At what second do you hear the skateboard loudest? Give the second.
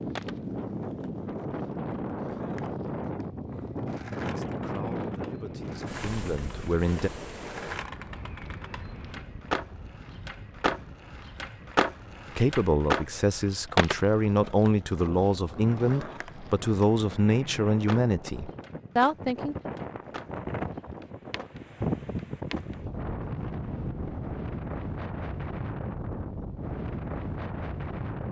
13 s.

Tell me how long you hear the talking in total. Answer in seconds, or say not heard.
10 s.